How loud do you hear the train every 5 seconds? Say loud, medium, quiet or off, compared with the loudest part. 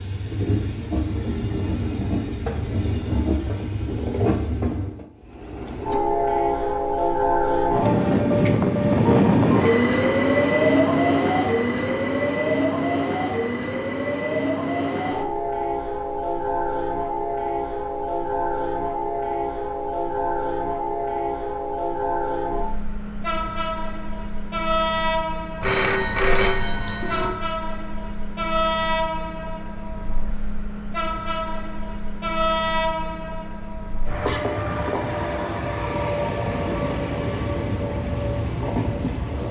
medium, loud, loud, medium, medium, medium, medium, medium.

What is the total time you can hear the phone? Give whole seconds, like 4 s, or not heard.
2 s.